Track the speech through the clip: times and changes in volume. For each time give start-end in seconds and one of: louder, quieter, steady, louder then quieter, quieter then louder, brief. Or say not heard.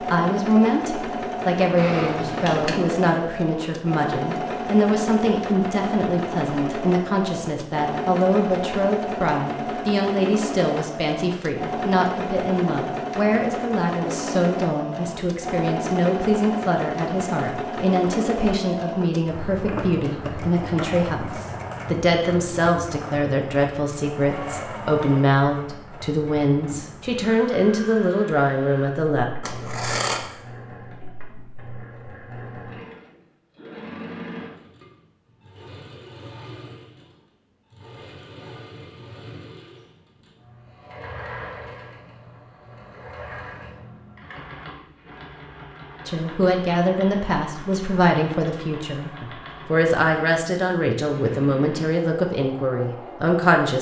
0.0-29.2 steady
46.0-53.7 steady.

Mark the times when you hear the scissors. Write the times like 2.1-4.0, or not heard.
1.8-2.8, 29.4-30.2.